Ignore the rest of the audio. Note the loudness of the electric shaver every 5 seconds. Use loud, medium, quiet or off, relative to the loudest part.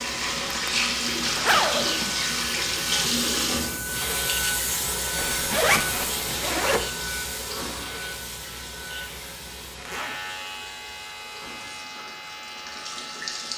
loud, loud, medium.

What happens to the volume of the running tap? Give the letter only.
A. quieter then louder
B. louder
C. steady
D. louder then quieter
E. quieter
E.